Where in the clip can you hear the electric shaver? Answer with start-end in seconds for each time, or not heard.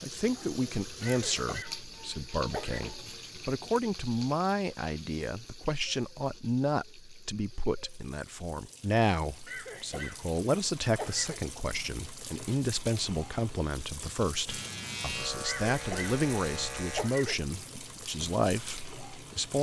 14.4-17.1.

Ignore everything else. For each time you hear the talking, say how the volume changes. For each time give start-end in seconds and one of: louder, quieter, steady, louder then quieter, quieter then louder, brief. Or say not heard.
0.0-19.5 steady.